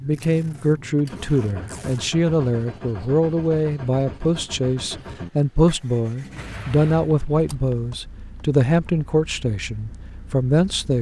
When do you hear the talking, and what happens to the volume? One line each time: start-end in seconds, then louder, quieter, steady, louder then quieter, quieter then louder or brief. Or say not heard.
0.0-10.9 steady.